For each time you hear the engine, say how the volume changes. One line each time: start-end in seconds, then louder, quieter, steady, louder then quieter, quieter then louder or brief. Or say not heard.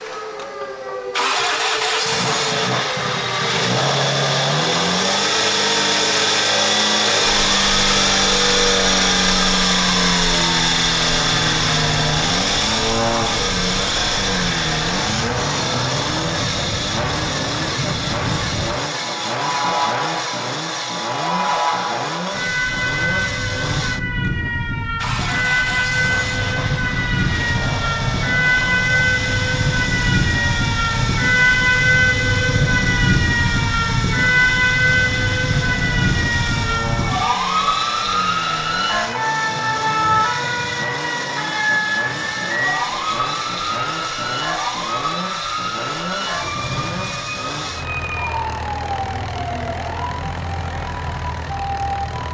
0.0-52.2 quieter.